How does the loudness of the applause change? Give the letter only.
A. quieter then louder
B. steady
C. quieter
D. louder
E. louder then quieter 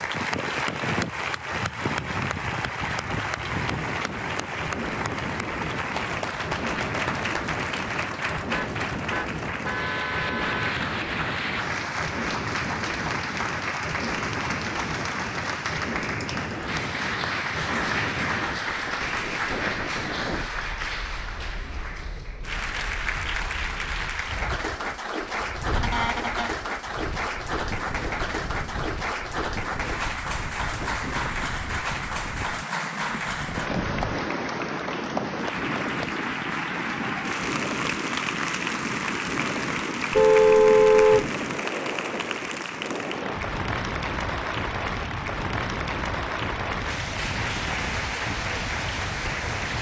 B.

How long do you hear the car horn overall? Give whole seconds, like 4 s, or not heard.
4 s.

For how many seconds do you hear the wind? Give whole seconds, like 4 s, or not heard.
50 s.